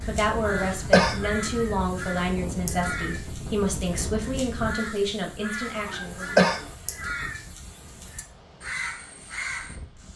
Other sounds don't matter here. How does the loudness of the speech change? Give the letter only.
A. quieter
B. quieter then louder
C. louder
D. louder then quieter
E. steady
E.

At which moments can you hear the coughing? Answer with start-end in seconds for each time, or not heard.
0.5-1.2, 5.8-6.7.